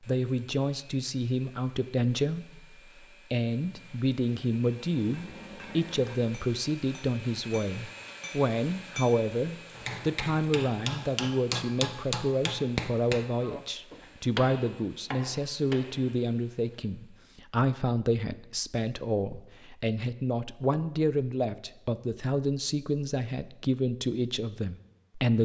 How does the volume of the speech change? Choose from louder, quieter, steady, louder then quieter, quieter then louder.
steady.